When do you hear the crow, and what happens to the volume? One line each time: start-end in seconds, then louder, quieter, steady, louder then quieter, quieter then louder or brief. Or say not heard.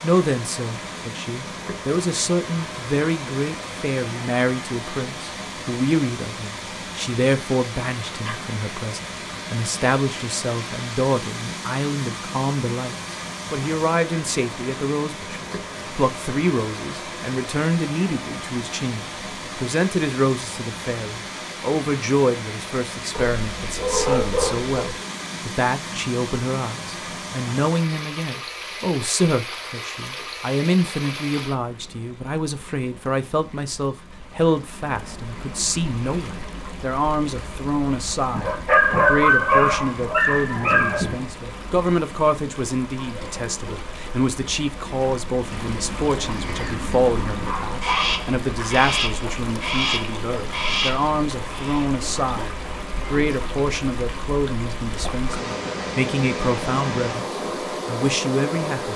46.3-51.9 louder.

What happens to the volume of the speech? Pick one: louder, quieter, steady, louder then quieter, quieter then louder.
steady.